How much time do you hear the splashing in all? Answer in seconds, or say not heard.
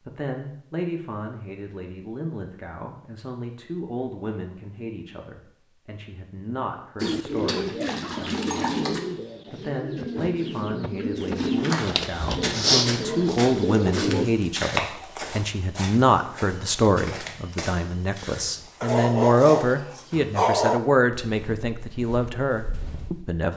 2 s.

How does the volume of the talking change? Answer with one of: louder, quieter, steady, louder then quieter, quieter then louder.
louder.